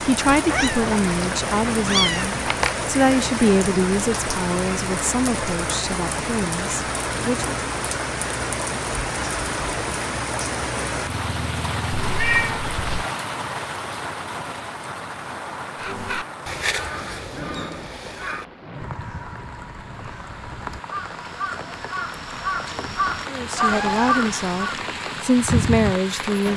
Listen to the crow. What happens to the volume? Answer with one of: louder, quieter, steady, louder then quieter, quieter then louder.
quieter then louder.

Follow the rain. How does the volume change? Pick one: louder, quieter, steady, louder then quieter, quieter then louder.
quieter then louder.